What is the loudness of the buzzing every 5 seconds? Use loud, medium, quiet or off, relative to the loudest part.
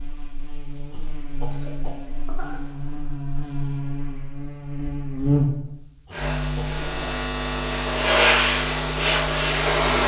medium, loud.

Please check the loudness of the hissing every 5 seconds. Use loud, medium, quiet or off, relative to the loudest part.
off, loud.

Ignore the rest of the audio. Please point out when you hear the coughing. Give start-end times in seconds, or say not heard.
0.9-2.6, 6.0-7.2.